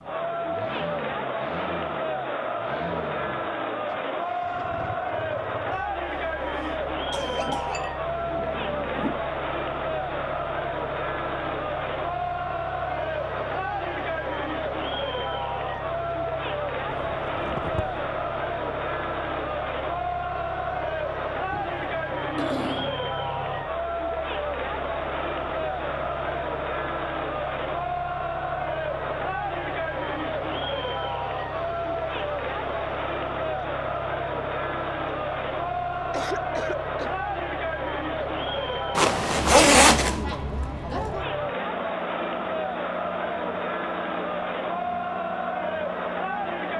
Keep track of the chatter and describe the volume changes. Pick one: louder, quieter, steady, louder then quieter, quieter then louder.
steady.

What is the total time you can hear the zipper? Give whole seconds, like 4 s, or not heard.
4 s.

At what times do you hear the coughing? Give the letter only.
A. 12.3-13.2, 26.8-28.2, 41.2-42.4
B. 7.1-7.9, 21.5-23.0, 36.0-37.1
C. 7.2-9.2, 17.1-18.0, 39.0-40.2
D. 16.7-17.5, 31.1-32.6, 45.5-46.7
B.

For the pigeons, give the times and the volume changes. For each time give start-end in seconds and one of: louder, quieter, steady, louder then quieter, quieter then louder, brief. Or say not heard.
not heard.